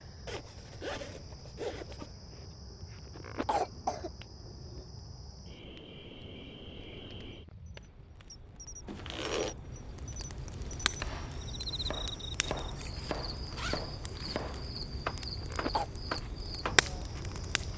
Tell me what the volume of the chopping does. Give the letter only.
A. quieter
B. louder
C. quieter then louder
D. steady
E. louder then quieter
B.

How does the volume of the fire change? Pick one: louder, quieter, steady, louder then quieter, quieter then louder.
louder.